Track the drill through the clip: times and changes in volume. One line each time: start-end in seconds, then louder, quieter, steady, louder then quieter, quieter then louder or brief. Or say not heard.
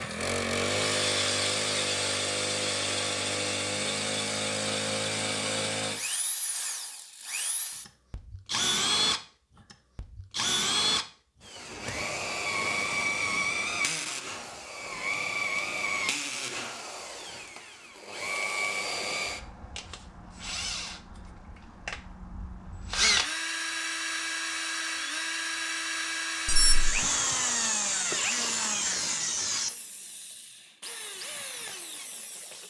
0.0-32.6 steady.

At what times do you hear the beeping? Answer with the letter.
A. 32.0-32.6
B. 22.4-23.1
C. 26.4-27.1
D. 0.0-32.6
C.